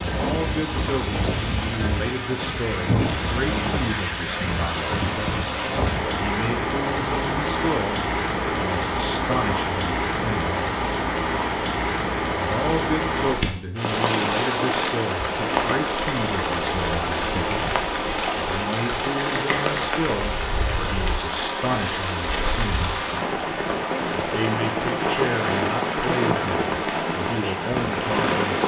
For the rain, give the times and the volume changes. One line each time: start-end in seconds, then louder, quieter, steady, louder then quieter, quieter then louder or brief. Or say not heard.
0.0-28.6 steady.